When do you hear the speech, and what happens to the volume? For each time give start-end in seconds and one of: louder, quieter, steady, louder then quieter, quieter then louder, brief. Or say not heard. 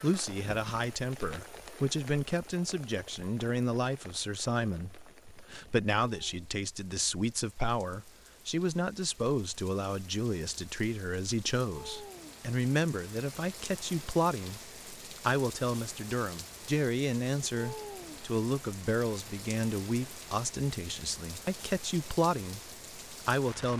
0.0-23.7 steady.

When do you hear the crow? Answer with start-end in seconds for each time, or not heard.
not heard.